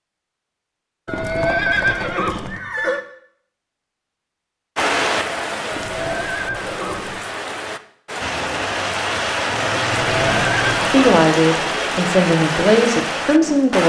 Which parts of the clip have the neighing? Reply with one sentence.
You can hear the neighing from 1.1 to 3.0 s, from 5.7 to 7.5 s and from 9.8 to 11.1 s.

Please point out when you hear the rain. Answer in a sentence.
The rain can be heard from 4.8 to 13.8 s.